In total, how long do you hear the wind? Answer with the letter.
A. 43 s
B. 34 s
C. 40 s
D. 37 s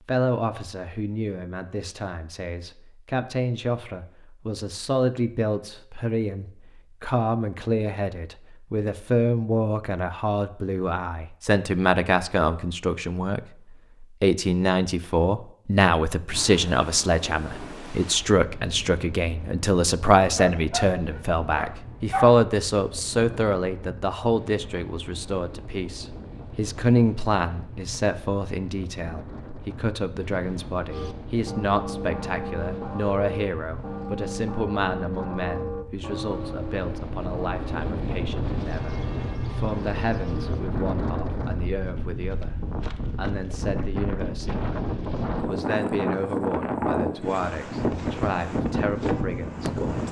B.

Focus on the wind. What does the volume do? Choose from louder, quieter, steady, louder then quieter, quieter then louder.
louder.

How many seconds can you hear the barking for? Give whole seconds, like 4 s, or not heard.
2 s.